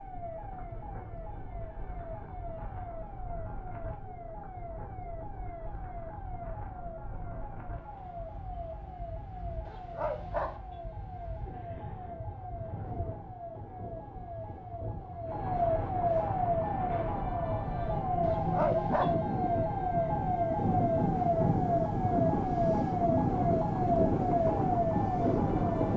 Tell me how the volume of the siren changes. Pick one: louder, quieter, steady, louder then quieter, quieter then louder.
louder.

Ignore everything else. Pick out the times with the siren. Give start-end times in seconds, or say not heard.
0.0-25.9.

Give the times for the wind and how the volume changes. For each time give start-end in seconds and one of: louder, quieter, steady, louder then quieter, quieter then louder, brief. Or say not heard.
0.0-25.9 louder.